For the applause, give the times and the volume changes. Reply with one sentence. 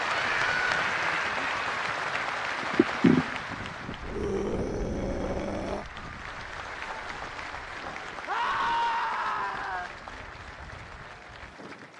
The applause can be heard from 0.0 to 11.9 s, getting quieter.